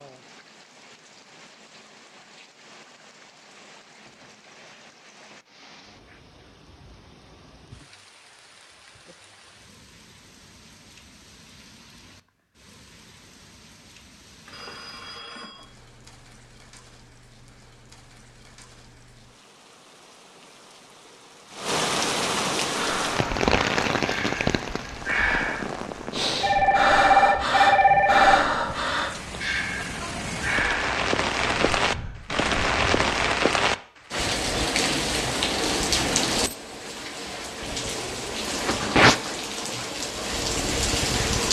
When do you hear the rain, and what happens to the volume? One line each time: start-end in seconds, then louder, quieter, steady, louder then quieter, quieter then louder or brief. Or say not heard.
0.0-41.4 louder.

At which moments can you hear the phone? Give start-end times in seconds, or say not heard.
14.4-15.7, 26.4-28.4.